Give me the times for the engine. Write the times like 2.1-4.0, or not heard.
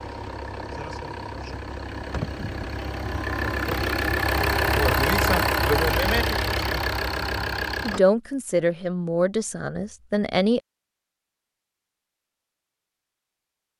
0.0-8.0.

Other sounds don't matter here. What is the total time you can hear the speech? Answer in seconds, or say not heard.
3 s.